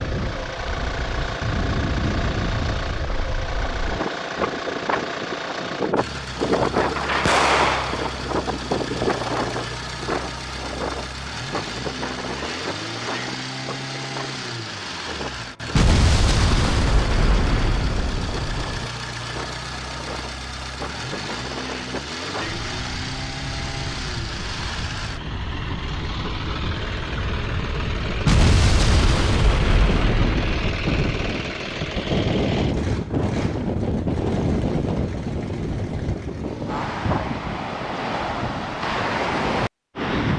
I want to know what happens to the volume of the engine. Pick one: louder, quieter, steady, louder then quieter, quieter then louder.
steady.